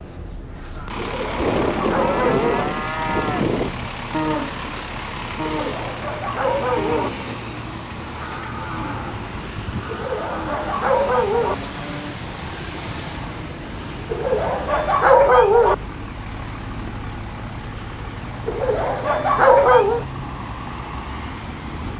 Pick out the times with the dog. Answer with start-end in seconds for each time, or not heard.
0.9-2.6, 5.5-7.1, 9.9-11.6, 14.1-15.8, 18.4-20.1.